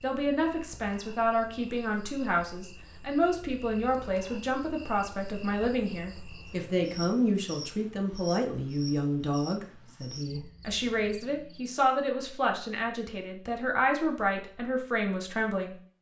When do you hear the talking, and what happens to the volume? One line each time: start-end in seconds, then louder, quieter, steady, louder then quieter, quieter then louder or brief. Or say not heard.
0.0-15.8 steady.